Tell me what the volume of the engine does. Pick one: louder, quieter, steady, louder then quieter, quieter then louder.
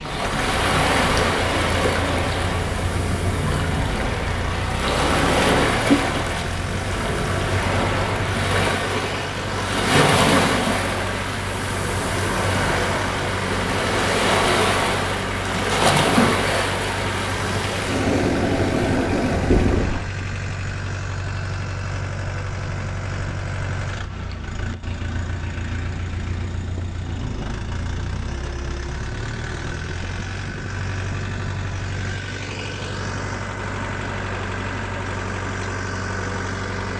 steady.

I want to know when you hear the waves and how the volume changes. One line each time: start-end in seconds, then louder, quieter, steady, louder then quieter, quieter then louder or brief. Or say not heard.
0.0-20.1 steady.